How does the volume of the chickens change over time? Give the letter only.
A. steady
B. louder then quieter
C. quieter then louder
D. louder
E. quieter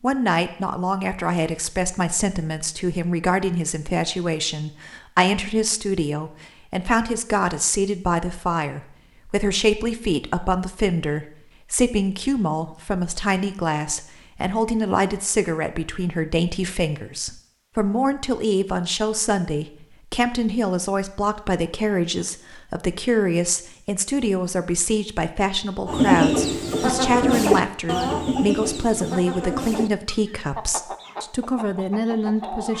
E.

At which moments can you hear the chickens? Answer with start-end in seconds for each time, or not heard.
25.9-32.7.